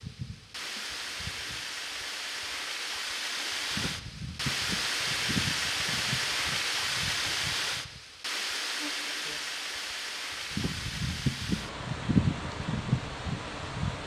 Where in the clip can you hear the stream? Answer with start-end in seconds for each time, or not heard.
0.0-14.0.